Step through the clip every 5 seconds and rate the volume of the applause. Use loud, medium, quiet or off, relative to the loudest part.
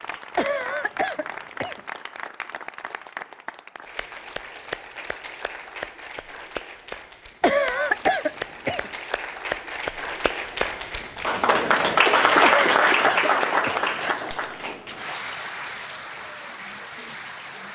quiet, quiet, loud, quiet.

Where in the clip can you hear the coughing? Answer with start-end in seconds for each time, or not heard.
0.3-1.8, 7.4-8.9, 12.4-13.9.